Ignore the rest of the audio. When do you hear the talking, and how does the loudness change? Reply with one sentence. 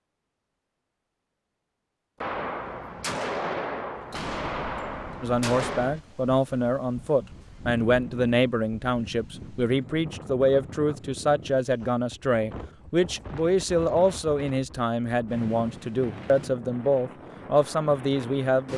The talking can be heard from 5.2 to 18.7 s, at a steady volume.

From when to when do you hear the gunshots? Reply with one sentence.
The gunshots can be heard from 2.2 to 6.0 s.